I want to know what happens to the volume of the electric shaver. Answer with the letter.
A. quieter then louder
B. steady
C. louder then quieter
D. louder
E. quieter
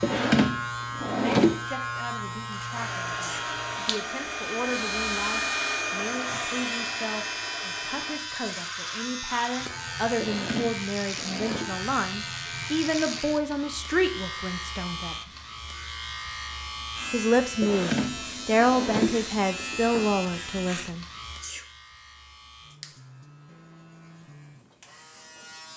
E.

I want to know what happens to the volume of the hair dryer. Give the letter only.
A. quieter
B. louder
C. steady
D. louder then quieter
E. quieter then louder
D.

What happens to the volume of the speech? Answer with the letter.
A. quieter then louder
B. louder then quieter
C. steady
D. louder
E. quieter
D.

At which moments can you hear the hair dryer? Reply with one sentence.
You can hear the hair dryer from 2.7 to 8.2 s.